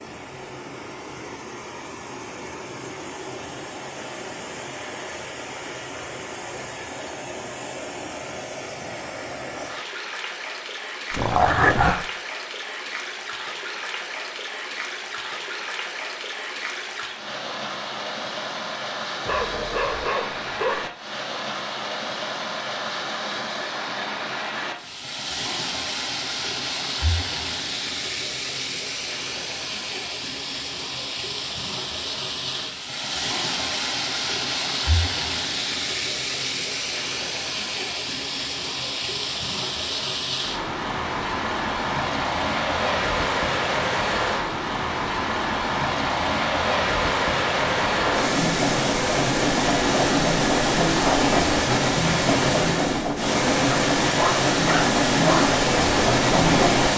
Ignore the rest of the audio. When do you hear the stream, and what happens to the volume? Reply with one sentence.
You can hear the stream from 0.0 to 56.9 s, getting louder.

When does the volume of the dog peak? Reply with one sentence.
The volume of the dog peaks at 12 seconds.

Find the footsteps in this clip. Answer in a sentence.
You can't hear the footsteps here.